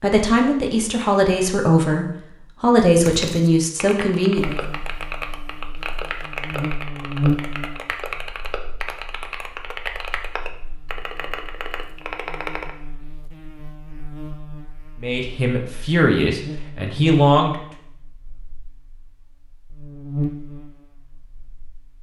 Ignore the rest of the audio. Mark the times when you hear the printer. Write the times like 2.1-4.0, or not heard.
not heard.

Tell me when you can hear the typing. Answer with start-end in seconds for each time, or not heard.
2.9-12.7.